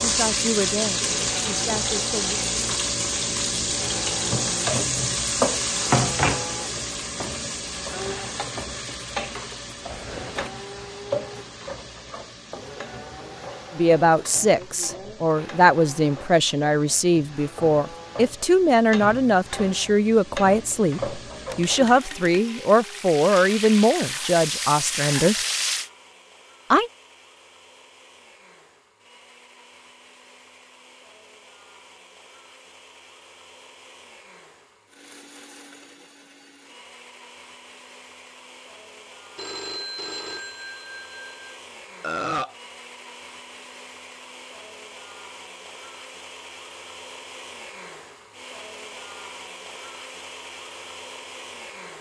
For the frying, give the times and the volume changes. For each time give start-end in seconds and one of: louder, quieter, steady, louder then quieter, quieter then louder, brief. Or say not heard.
0.0-25.9 quieter then louder.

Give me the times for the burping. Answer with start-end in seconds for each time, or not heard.
42.0-42.5.